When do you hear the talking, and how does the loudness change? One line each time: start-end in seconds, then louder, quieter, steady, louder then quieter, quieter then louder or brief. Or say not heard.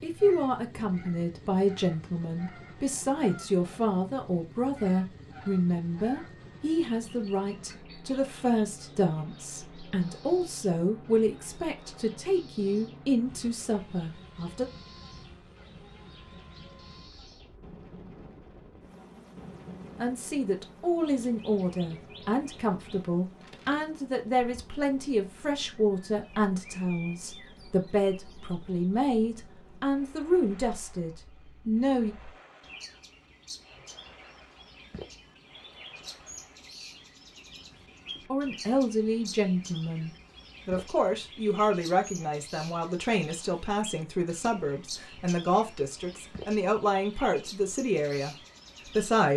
0.0-14.7 steady
20.0-32.1 steady
38.3-49.3 steady.